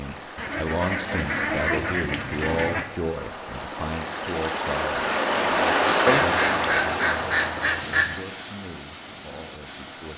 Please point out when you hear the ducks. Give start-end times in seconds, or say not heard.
0.3-2.9, 6.0-8.2.